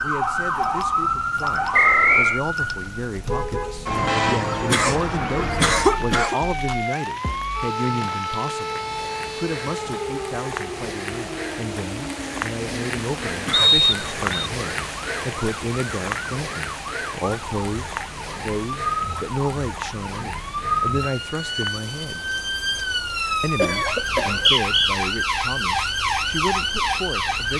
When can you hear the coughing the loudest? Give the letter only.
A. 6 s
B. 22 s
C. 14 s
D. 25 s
A.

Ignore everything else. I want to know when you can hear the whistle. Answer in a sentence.
You can hear the whistle from 1.7 to 2.4 s, from 13.5 to 14.5 s and from 24.2 to 24.9 s.